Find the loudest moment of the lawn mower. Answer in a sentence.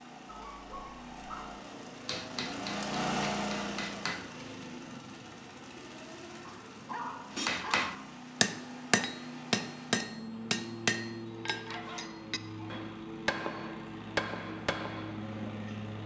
The volume of the lawn mower peaks at 3 seconds.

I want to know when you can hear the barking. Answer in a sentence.
You can hear the barking from 0.2 to 1.6 s, from 6.4 to 8.1 s and from 11.7 to 12.8 s.